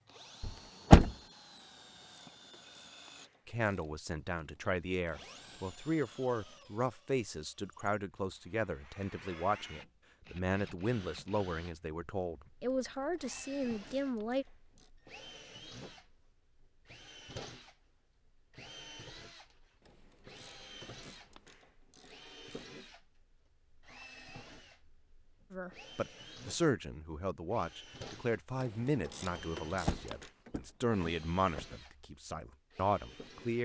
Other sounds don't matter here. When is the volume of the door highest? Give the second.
1 s.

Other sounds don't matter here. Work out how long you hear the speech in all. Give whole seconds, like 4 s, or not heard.
19 s.